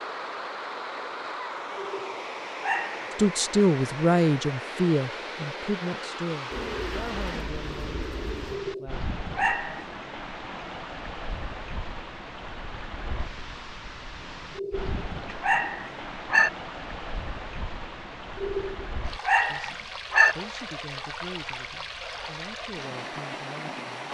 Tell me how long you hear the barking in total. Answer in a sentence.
You can hear the barking for 7 seconds altogether.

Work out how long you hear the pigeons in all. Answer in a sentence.
You can hear the pigeons for 2 seconds altogether.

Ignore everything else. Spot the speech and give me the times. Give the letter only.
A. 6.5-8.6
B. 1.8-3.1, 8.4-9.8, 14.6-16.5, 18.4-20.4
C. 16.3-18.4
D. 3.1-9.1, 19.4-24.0
D.